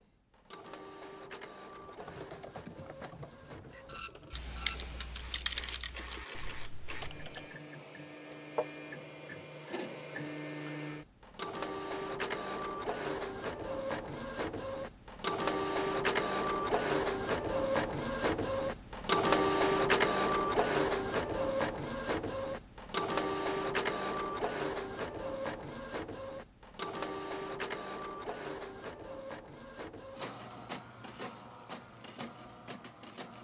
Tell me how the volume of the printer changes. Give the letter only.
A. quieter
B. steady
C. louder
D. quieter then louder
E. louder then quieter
E.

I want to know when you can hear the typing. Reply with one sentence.
You can hear the typing from 1.9 to 7.5 s.